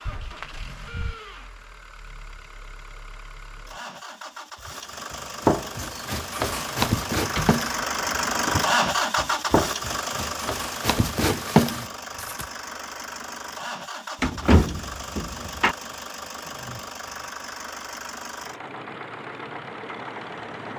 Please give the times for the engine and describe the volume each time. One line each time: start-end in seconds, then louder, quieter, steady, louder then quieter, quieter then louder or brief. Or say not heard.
0.0-20.7 louder then quieter.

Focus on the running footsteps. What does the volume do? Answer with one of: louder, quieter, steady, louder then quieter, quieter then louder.
quieter then louder.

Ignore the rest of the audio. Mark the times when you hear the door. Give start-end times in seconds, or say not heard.
0.1-1.2, 7.0-8.2, 14.2-15.8.